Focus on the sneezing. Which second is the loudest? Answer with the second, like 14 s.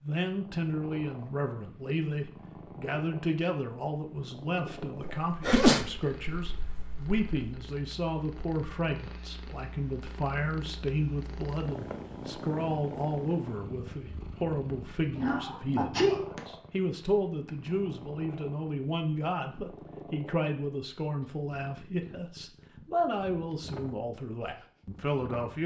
6 s.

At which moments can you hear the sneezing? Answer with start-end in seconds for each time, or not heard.
5.0-7.2, 15.2-16.4.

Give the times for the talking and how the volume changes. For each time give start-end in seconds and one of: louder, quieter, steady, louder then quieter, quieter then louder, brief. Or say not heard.
0.0-25.6 steady.